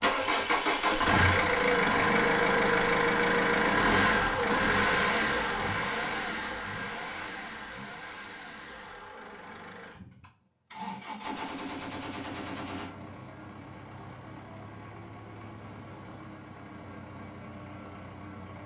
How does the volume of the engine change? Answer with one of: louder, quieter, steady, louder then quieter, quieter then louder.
quieter.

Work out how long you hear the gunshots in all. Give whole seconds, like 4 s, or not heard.
2 s.